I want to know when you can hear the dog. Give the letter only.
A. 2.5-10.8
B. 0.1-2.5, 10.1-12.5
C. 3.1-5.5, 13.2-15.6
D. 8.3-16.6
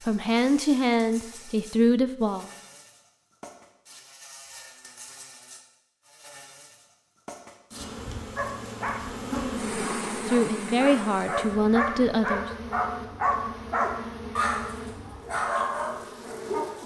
D.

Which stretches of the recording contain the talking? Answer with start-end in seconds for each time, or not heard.
0.1-2.5, 10.1-12.5.